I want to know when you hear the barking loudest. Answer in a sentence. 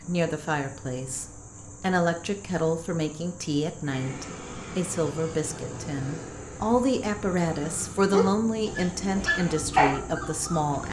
The volume of the barking peaks at 10 seconds.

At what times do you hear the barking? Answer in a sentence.
The barking can be heard from 8.1 to 10.8 s.